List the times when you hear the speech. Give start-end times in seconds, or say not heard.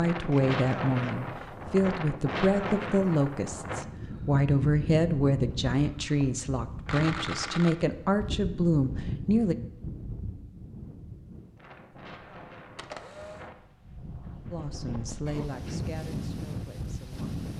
0.0-9.6, 14.5-17.3.